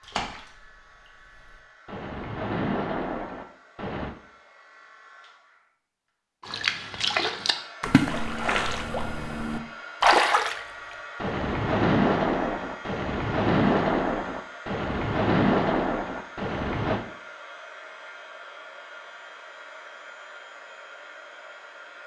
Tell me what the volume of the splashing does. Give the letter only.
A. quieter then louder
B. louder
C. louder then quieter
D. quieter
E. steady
B.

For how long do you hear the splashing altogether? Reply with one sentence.
You can hear the splashing for 15 seconds altogether.